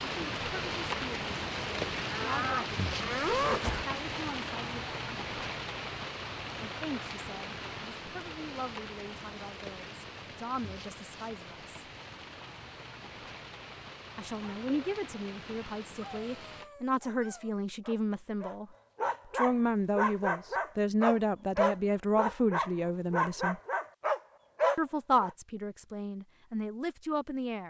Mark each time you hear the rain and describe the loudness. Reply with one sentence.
The rain can be heard from 0.0 to 16.7 s, getting quieter.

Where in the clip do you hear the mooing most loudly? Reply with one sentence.
The volume of the mooing peaks at 3 seconds.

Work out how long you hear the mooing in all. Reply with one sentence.
You can hear the mooing for 2 seconds altogether.